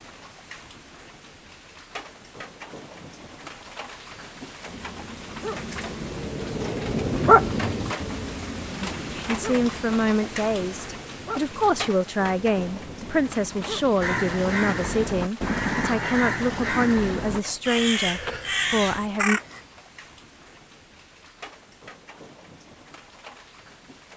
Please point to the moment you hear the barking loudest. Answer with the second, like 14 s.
7 s.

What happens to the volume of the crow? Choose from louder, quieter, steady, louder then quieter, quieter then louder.
steady.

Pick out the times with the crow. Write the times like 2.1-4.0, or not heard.
14.0-19.6.